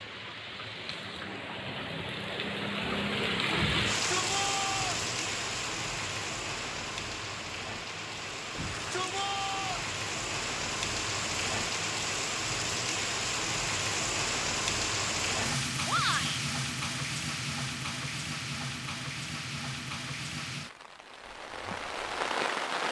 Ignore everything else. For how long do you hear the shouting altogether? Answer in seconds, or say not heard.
3 s.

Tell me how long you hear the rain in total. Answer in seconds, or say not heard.
23 s.